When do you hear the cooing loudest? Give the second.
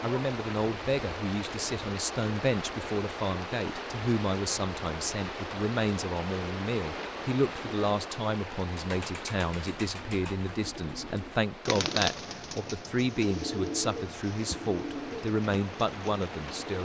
12 s.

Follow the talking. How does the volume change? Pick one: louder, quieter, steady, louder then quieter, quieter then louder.
steady.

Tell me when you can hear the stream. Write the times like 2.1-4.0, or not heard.
0.0-16.8.